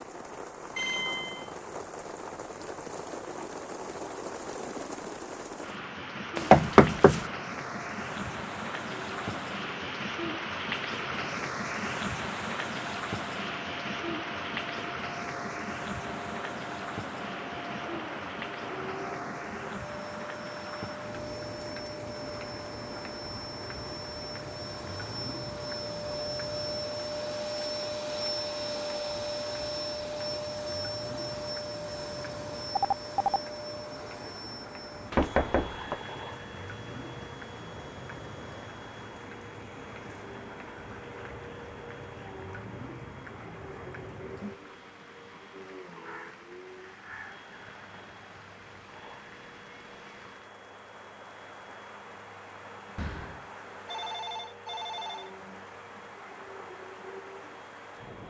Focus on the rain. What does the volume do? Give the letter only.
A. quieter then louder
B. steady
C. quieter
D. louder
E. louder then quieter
C.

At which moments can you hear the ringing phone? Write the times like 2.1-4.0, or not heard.
0.8-1.6, 32.8-33.4, 53.0-55.3.